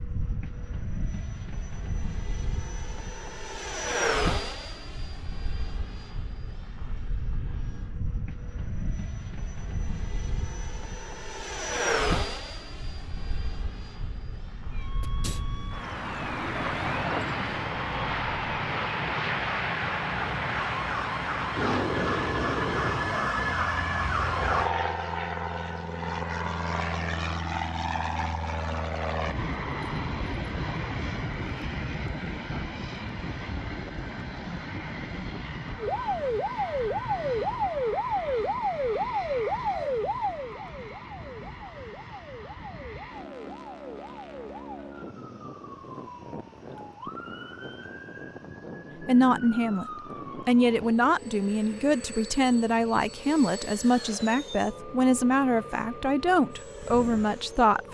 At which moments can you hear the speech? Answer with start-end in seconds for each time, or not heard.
49.0-49.9, 50.5-57.8.